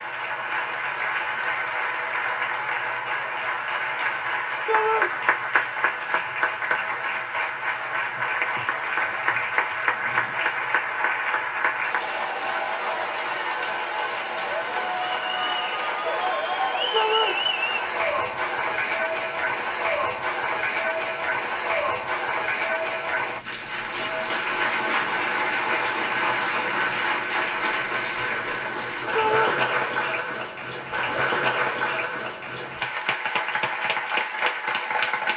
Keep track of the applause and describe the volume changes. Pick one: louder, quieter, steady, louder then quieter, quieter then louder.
steady.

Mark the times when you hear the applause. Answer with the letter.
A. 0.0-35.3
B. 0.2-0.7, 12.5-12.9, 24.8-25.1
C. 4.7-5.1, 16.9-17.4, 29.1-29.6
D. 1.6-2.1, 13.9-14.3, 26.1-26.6
A.